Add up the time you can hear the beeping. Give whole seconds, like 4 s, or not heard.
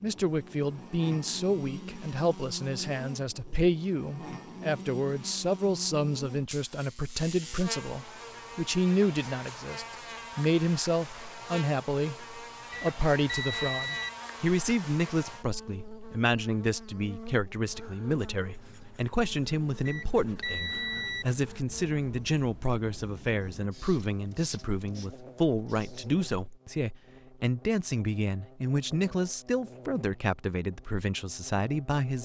3 s.